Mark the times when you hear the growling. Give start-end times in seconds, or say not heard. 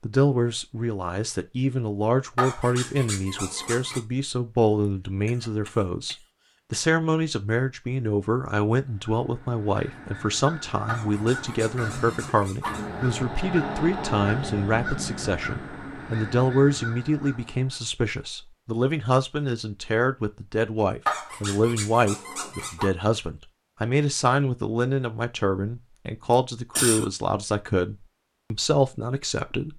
2.4-4.0, 10.8-12.9, 21.1-22.9.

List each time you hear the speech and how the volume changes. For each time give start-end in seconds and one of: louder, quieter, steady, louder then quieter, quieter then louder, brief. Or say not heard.
0.0-29.7 steady.